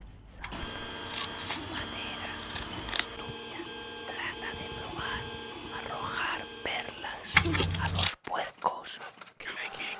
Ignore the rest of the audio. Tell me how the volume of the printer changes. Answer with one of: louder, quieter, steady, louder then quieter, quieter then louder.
quieter.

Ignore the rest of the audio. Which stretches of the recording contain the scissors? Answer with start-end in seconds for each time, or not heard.
0.4-3.0, 7.3-8.1.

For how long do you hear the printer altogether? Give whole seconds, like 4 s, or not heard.
10 s.